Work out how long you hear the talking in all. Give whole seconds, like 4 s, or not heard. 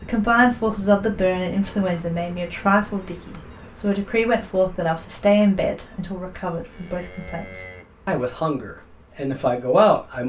10 s.